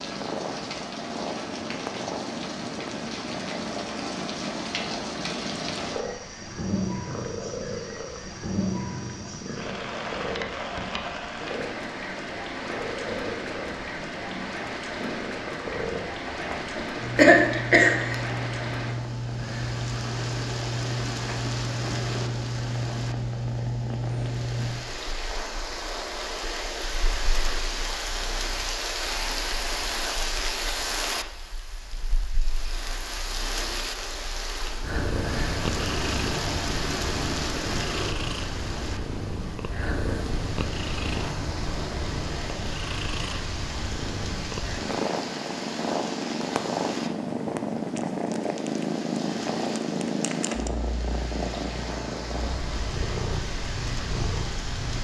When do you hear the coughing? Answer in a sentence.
The coughing can be heard from 16.8 to 18.3 s.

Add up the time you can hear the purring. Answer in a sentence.
The purring can be heard for 55 seconds in total.